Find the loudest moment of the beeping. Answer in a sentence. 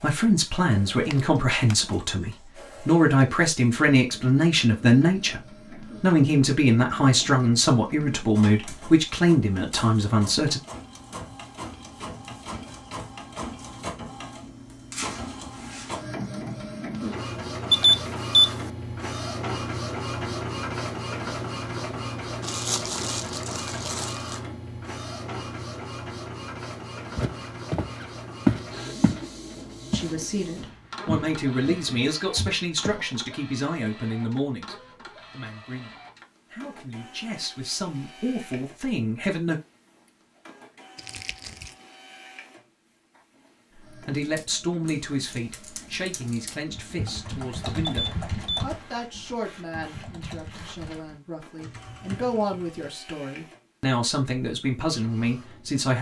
The loudest moment of the beeping is at 18 seconds.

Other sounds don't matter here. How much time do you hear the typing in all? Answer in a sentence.
The typing can be heard for 9 seconds in total.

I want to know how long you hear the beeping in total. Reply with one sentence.
The beeping can be heard for 2 seconds in total.